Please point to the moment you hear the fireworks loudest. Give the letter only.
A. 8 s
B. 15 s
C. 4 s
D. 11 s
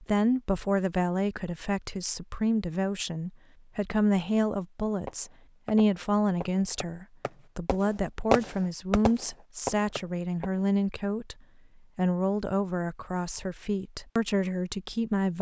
A.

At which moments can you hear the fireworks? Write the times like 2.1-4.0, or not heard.
5.0-10.7.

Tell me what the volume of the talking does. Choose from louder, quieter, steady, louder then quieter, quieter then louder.
steady.